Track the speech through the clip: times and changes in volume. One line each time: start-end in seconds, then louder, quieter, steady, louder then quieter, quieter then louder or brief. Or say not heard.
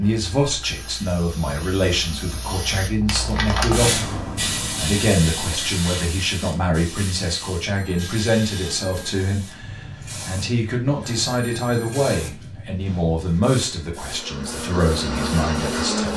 0.0-16.1 steady.